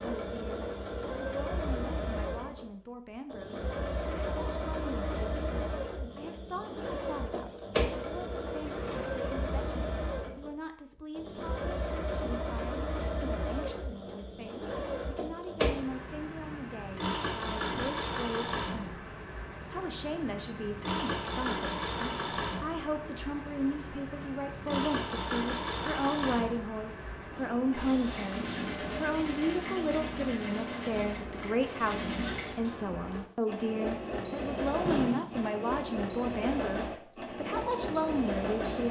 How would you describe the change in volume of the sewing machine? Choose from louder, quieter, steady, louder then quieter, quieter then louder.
steady.